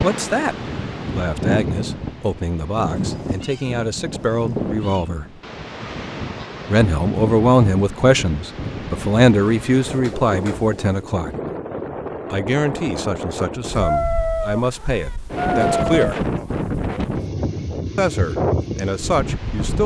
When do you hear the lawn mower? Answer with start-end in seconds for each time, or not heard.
not heard.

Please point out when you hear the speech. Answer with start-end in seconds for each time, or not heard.
0.0-0.6, 1.1-5.2, 6.7-11.3, 12.3-16.2, 17.9-19.8.